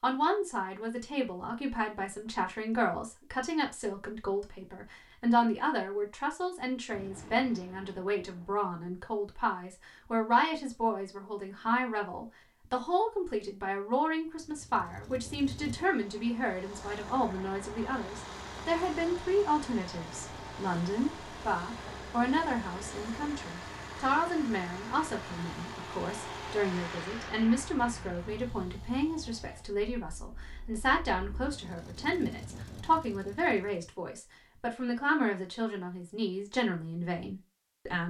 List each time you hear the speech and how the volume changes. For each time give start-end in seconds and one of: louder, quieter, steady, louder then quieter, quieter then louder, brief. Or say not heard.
0.0-38.0 steady.